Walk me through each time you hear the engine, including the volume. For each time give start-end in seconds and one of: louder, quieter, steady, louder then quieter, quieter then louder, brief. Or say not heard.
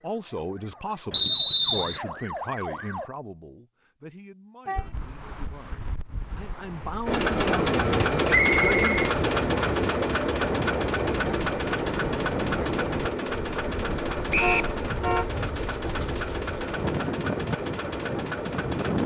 7.0-19.0 quieter.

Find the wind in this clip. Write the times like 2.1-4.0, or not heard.
4.8-19.0.